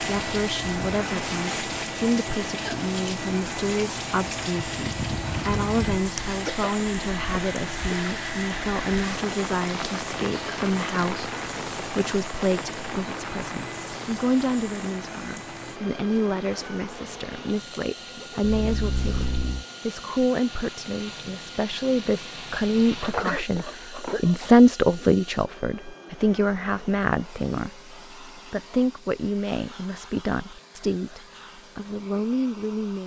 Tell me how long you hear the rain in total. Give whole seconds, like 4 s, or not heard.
23 s.